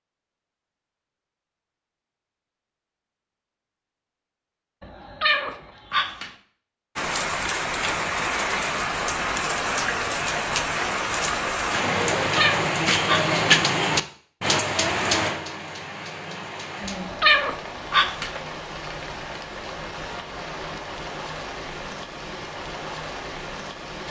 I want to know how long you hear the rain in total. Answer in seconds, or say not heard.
17 s.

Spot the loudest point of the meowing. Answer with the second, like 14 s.
17 s.